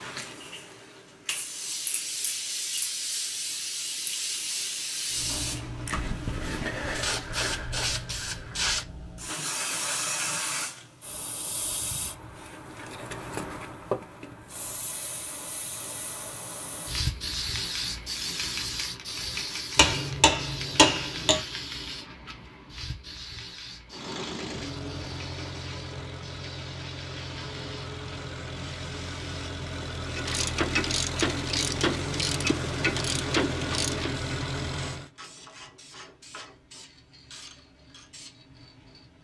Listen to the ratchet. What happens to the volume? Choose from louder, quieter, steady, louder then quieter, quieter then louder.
quieter.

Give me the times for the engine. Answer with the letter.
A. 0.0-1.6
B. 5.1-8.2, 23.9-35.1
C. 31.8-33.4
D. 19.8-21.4
B.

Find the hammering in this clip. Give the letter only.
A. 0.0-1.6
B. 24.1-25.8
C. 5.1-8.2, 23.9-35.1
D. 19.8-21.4
D.